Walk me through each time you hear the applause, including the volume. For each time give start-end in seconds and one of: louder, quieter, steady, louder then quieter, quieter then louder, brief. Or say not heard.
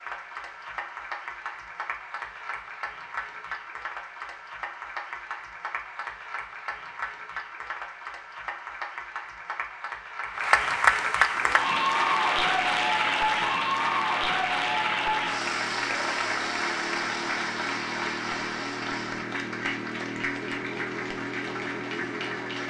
0.0-22.6 louder then quieter.